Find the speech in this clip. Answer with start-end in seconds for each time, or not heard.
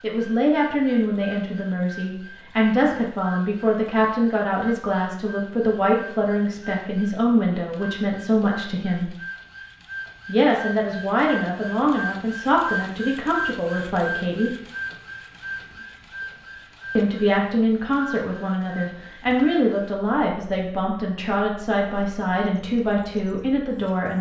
0.0-9.1, 10.2-14.6, 16.9-24.1.